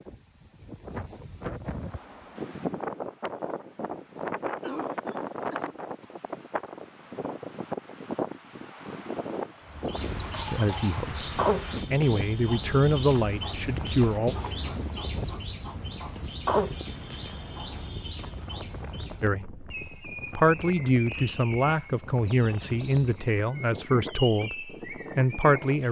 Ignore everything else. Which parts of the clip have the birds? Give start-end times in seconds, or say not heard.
9.7-25.8.